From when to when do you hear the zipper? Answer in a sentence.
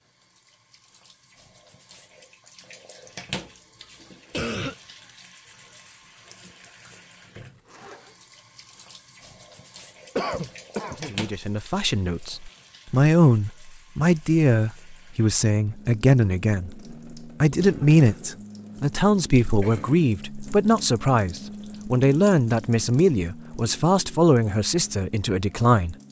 You can hear the zipper from 7.3 to 8.2 s.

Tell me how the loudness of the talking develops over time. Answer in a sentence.
The volume of the talking stays about the same.